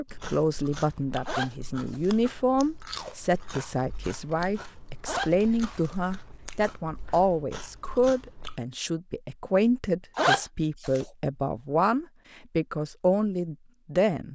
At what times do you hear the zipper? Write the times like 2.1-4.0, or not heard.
1.2-2.1, 5.0-6.0, 10.2-11.1.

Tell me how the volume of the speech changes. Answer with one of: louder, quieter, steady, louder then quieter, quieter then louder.
steady.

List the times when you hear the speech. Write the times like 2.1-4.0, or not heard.
0.0-14.3.